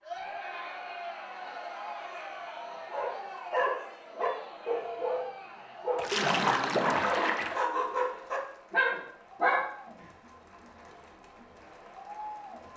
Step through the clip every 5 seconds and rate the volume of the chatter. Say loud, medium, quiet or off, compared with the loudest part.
loud, medium, medium.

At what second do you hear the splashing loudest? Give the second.
6 s.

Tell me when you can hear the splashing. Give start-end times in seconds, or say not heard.
6.0-7.7.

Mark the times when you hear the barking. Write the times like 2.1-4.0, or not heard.
2.9-9.7.